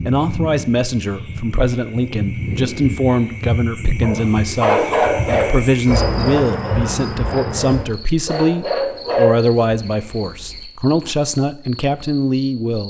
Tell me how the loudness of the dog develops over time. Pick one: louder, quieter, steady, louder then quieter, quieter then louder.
quieter then louder.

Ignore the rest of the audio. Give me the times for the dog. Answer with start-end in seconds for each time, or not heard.
4.0-10.6.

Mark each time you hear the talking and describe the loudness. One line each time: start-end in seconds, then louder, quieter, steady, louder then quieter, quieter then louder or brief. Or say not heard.
0.1-12.8 steady.